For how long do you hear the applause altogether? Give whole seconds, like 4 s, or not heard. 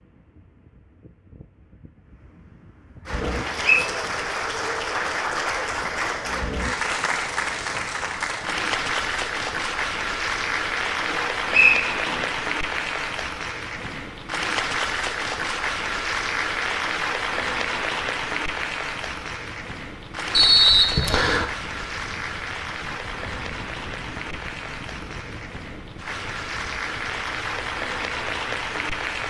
26 s.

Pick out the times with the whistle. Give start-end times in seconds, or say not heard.
3.2-3.9, 11.1-12.2, 20.3-21.4.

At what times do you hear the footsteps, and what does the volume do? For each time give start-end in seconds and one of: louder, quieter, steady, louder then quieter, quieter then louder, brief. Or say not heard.
not heard.